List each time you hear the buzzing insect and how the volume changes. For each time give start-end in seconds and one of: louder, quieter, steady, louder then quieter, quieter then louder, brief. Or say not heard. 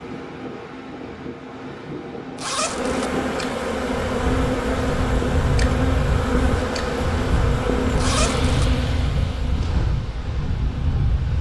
2.6-11.3 quieter.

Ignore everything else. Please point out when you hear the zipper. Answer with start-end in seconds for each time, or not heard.
2.4-3.1, 8.0-8.7.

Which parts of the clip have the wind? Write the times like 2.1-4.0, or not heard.
0.0-11.3.